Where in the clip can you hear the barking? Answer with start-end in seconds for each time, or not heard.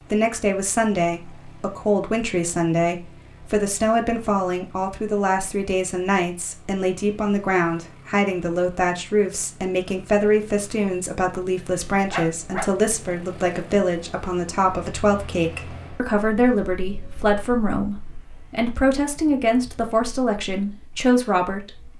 12.1-12.7.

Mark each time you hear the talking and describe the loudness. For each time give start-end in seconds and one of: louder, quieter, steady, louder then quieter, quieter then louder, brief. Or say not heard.
0.1-21.7 steady.